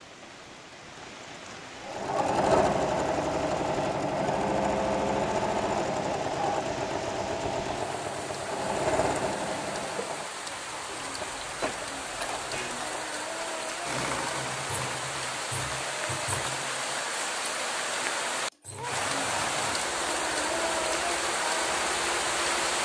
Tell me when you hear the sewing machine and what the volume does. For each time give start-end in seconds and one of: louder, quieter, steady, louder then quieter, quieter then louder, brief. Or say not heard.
1.8-22.8 quieter.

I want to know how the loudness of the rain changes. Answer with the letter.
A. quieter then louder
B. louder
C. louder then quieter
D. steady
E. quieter
B.